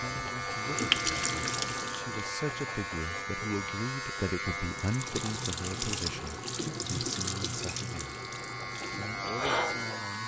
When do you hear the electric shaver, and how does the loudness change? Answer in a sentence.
You can hear the electric shaver from 0.0 to 10.2 s, getting quieter then louder.